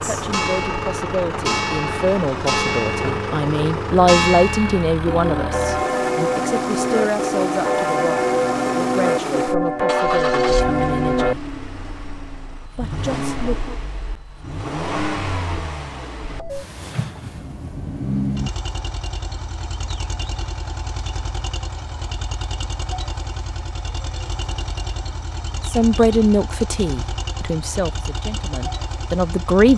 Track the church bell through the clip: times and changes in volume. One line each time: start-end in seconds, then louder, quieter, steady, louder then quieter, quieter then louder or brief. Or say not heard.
0.0-11.3 louder.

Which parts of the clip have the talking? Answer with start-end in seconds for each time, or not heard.
0.0-11.5, 12.8-13.8, 25.6-29.7.